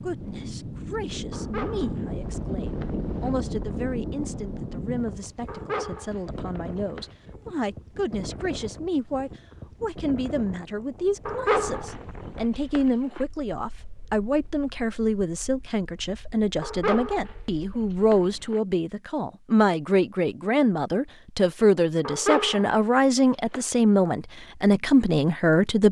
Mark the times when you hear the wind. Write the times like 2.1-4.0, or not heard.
0.0-18.5.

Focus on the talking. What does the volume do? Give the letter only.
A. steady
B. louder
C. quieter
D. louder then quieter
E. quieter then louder
B.